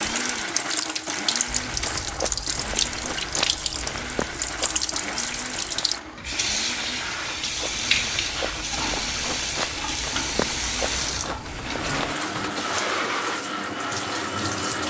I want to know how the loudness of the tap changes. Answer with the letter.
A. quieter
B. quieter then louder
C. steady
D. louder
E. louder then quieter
C.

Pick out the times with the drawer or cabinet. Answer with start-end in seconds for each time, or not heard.
not heard.